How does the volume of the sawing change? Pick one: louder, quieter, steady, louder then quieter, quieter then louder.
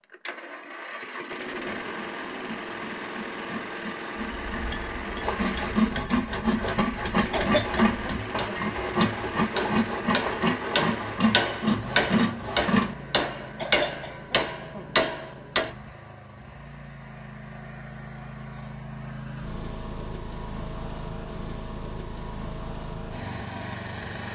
louder.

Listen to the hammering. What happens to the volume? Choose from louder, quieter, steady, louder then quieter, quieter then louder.
louder.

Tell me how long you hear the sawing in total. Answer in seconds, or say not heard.
11 s.